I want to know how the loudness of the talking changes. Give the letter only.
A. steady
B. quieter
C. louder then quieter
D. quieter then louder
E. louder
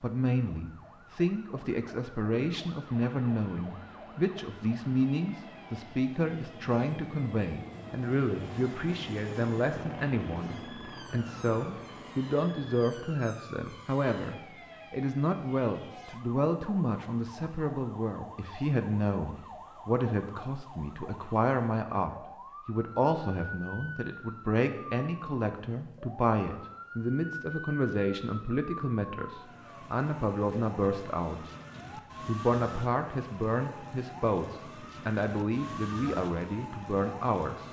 A.